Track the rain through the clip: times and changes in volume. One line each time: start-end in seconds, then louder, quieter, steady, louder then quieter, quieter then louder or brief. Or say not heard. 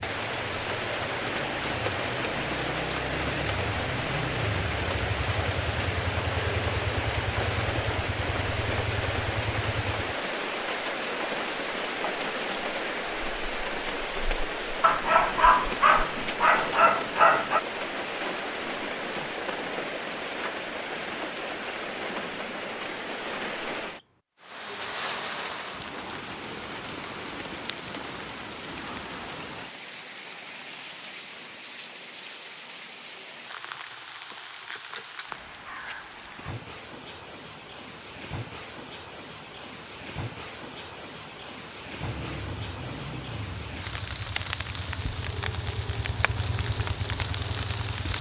0.0-48.1 quieter.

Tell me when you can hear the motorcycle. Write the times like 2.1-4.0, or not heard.
0.0-10.2, 42.0-48.1.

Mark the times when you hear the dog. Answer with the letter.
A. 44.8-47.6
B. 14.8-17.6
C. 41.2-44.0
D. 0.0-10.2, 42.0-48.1
B.